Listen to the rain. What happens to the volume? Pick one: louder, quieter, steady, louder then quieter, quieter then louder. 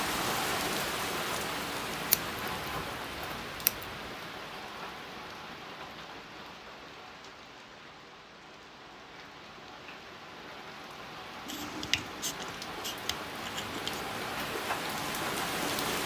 quieter then louder.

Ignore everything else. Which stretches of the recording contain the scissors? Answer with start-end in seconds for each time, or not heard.
2.1-4.1, 11.4-14.0.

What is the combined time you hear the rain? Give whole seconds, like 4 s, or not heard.
16 s.